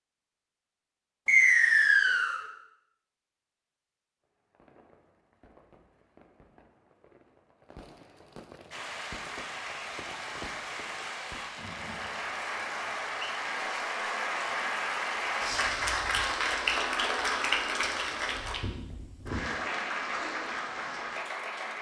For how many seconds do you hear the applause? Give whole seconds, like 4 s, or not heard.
13 s.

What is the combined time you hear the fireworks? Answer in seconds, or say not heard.
7 s.